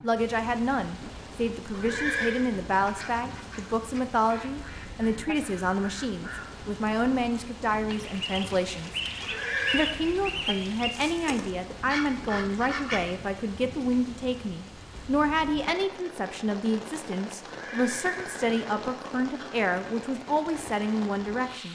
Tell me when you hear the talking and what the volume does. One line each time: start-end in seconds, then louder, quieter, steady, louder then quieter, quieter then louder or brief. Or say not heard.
0.0-9.0 steady
9.7-21.6 steady.